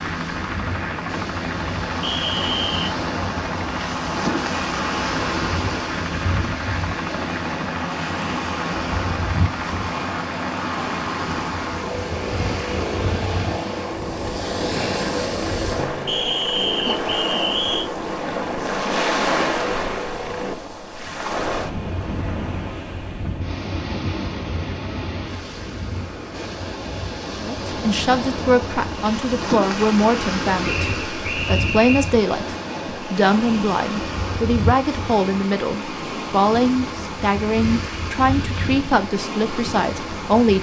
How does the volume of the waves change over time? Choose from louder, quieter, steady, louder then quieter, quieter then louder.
steady.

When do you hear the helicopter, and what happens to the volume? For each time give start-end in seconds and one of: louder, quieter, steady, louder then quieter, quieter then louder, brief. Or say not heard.
0.0-20.6 steady.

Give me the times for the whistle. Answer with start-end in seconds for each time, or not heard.
2.0-2.8, 16.1-17.9, 30.6-32.1.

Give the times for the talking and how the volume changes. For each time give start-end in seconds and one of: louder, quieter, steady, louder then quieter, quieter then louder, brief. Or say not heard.
27.4-40.5 steady.